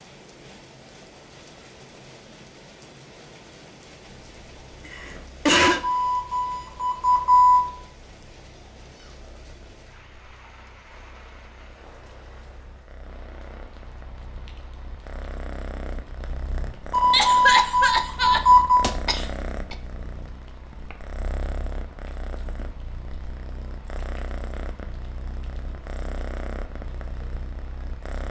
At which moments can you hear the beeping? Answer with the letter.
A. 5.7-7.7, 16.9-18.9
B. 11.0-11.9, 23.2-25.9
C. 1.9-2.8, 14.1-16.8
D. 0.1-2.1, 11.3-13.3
A.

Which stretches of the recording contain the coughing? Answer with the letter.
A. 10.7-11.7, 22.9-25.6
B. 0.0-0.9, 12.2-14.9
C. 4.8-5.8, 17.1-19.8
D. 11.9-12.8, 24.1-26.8
C.